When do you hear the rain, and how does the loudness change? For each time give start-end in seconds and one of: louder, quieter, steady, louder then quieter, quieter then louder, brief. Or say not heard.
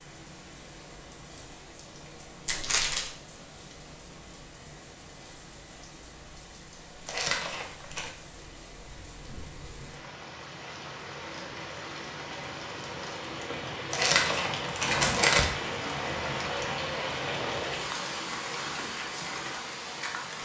0.0-20.4 louder.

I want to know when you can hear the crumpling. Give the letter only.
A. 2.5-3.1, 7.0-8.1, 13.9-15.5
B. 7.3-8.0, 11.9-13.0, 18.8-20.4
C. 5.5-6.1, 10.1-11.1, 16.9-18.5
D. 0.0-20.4
A.